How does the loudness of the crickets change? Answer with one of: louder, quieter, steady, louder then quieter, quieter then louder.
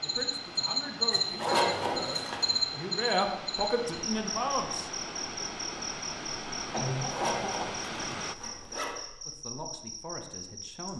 quieter.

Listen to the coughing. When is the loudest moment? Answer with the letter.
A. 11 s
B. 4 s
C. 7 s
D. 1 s
C.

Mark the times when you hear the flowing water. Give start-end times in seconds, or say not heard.
0.0-8.3.